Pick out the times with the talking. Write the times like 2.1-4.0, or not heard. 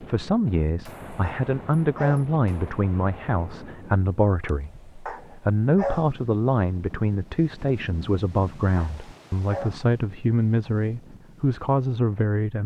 0.0-12.6.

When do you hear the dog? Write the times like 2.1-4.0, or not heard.
1.2-2.2, 5.0-6.0, 8.8-9.8.